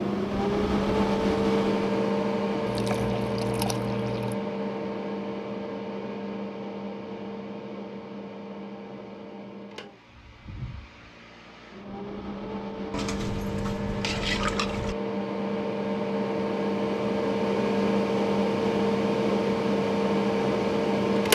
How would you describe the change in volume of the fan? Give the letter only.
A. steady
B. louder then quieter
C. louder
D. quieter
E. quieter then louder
E.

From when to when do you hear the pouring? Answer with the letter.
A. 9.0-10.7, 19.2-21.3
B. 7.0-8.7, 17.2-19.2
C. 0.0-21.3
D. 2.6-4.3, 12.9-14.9
D.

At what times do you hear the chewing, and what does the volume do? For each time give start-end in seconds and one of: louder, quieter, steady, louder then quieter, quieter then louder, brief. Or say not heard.
not heard.